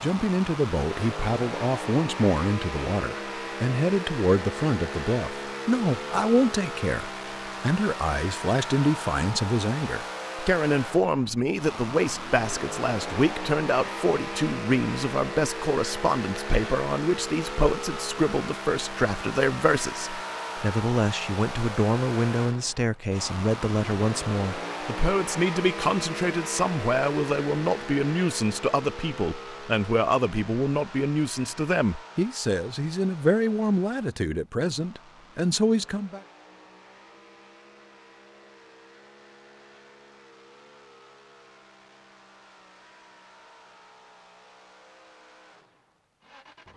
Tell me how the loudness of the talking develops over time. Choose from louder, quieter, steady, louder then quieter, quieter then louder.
steady.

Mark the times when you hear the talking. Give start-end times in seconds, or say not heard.
0.0-36.2.